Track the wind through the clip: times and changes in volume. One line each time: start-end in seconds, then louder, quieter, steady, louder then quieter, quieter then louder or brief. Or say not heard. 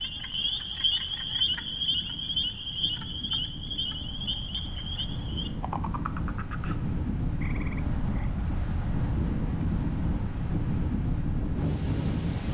0.0-12.4 louder.